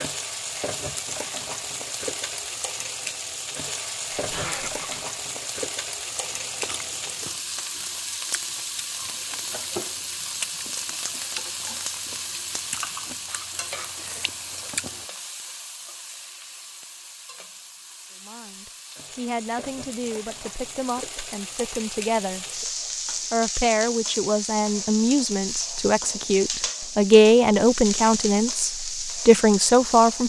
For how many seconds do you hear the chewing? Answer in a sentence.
The chewing can be heard for 9 seconds in total.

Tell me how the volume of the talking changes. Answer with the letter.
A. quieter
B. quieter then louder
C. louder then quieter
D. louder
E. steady
D.